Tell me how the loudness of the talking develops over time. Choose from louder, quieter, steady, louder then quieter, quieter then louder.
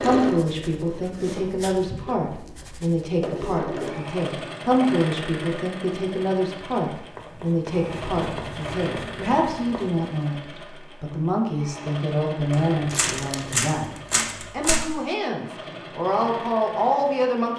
steady.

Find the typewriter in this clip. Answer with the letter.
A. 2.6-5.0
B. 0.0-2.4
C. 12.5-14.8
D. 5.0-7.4
C.